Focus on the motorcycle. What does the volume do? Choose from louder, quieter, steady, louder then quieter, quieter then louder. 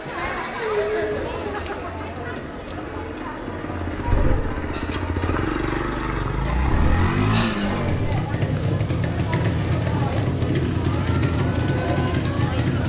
louder.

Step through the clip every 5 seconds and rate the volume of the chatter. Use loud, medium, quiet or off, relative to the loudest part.
loud, medium, loud.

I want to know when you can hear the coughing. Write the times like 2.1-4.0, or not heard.
4.0-4.8, 6.7-8.0.